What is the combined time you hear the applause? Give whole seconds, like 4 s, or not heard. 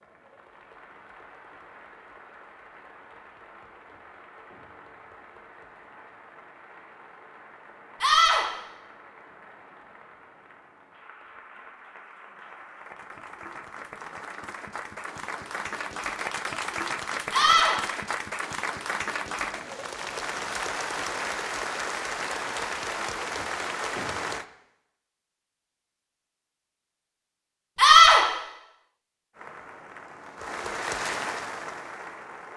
28 s.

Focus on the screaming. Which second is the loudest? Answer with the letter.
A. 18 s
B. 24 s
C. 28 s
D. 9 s
C.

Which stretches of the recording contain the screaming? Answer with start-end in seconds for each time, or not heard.
8.0-8.4, 17.3-17.8, 27.8-28.2.